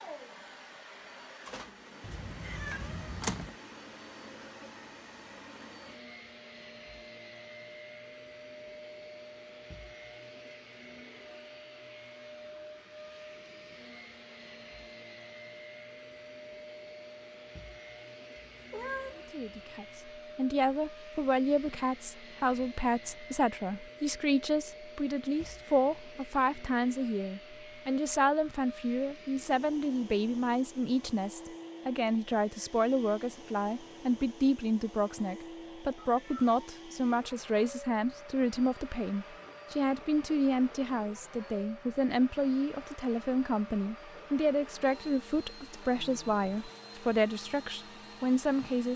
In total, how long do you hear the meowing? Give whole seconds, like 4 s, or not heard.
3 s.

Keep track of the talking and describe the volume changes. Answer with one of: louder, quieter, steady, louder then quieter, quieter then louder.
steady.